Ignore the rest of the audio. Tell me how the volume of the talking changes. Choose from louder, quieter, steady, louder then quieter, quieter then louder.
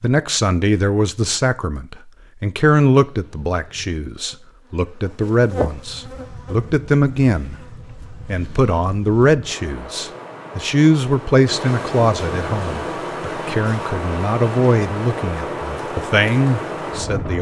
steady.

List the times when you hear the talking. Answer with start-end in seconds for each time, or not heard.
0.0-17.3.